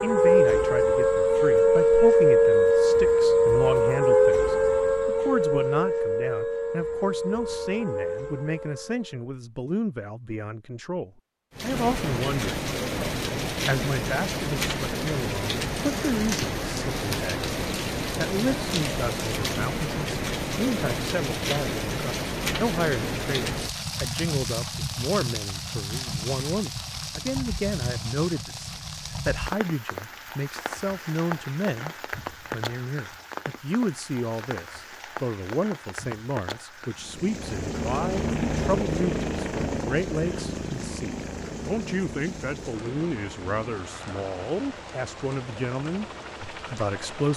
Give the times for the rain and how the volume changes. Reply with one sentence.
The rain can be heard from 11.6 to 47.3 s, getting quieter.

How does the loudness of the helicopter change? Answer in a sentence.
The loudness of the helicopter goes down.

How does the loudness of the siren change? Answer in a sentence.
The volume of the siren goes down.